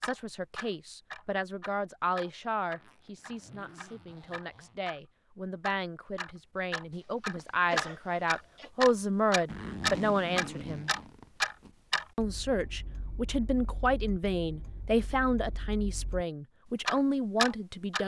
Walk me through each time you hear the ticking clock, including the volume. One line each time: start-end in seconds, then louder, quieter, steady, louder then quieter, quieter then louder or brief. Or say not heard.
0.0-16.2 louder then quieter
16.9-18.0 brief.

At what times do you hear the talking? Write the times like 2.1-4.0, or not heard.
0.0-10.9, 12.2-18.0.